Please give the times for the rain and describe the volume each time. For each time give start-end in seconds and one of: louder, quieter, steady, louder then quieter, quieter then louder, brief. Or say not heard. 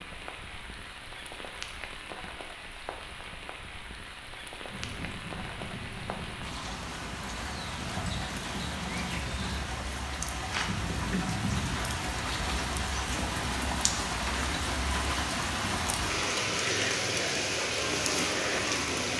0.0-19.1 louder.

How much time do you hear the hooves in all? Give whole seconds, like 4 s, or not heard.
9 s.